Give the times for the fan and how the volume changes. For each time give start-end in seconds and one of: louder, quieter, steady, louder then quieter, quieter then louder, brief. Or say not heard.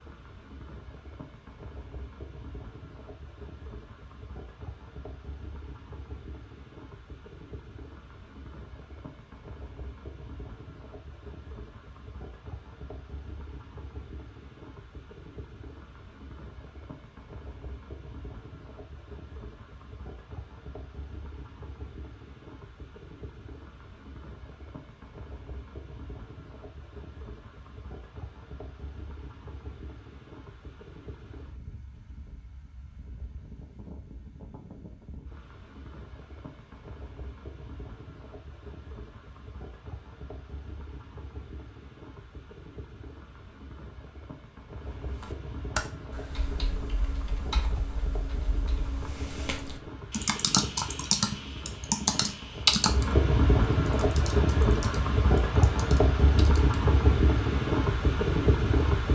0.0-59.0 louder.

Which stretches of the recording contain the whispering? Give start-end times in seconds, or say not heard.
not heard.